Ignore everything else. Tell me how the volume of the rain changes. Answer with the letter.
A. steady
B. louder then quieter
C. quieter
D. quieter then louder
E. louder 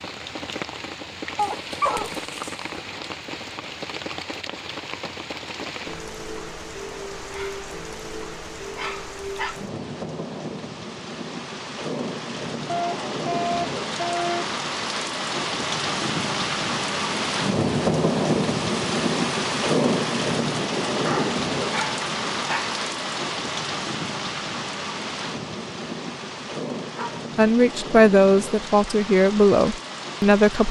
B.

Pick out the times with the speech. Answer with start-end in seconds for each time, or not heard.
27.4-30.6.